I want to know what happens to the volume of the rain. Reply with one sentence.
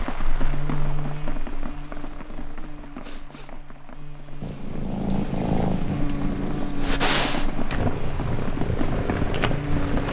The volume of the rain goes down, then up.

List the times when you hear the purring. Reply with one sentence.
You can hear the purring from 4.4 to 10.0 s.